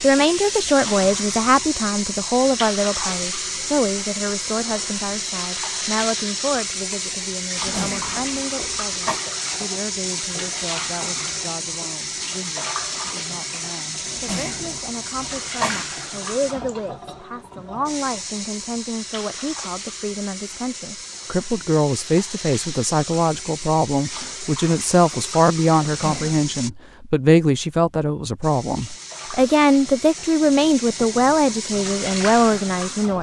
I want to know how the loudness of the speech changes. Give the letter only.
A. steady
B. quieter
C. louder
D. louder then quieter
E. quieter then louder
E.